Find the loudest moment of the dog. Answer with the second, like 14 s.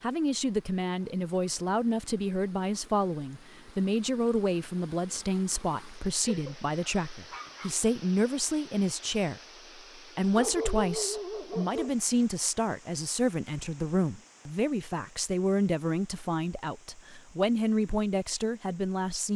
11 s.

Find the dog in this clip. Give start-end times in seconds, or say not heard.
6.2-7.8, 10.3-12.0.